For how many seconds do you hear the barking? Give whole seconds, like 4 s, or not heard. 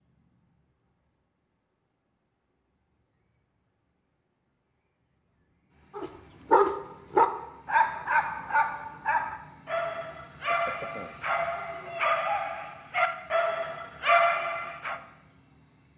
9 s.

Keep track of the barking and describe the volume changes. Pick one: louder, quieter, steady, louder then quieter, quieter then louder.
quieter then louder.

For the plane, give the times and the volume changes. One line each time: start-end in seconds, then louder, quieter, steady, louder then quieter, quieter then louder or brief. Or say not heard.
not heard.